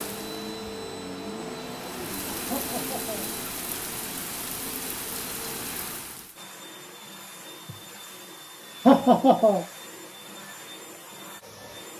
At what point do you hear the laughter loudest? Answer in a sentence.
The volume of the laughter peaks at 9 seconds.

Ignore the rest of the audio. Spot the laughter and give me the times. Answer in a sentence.
The laughter can be heard from 2.5 to 3.3 s and from 8.8 to 9.7 s.